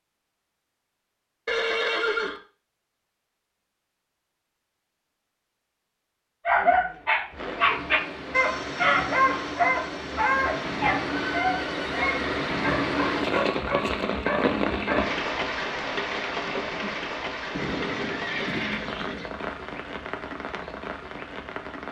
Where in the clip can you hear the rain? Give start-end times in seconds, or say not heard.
7.3-21.8.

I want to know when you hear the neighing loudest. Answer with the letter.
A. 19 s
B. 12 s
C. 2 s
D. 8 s
C.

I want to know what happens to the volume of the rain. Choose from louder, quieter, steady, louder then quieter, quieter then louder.
louder then quieter.